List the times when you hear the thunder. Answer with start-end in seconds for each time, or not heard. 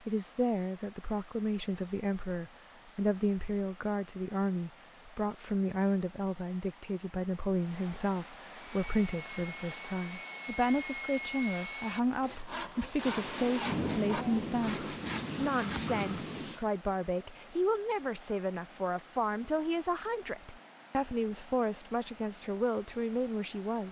12.9-16.6.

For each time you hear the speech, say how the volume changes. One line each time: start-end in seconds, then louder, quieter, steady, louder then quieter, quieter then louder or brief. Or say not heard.
0.1-23.8 steady.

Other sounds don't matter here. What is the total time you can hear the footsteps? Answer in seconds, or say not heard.
not heard.